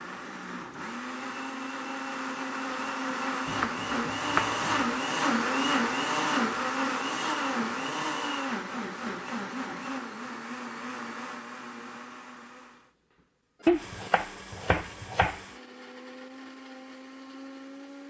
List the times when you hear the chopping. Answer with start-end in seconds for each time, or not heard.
3.5-5.0, 13.7-15.4.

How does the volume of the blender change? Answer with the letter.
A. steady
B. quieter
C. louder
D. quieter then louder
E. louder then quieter
E.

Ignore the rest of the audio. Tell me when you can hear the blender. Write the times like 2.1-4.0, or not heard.
0.0-18.0.